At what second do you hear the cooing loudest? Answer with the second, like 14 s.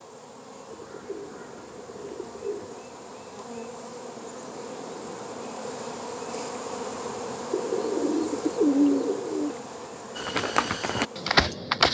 9 s.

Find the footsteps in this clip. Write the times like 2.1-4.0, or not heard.
10.2-11.8.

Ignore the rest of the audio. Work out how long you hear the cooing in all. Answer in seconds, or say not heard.
4 s.